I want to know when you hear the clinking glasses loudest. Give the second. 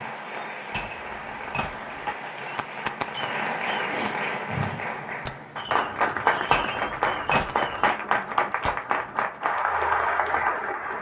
7 s.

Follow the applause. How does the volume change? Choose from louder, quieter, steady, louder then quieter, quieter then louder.
louder.